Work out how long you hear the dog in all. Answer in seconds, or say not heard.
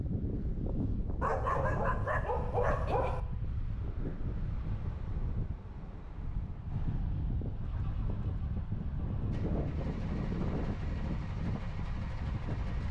2 s.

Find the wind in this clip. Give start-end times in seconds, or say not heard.
0.0-12.8.